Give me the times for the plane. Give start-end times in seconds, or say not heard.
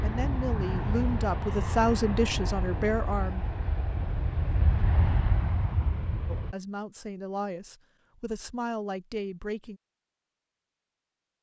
0.0-6.5.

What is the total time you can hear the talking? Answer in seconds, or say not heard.
7 s.